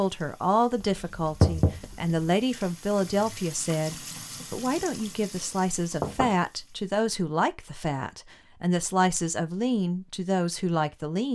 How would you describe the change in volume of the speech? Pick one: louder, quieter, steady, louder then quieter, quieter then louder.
steady.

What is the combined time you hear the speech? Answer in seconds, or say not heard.
11 s.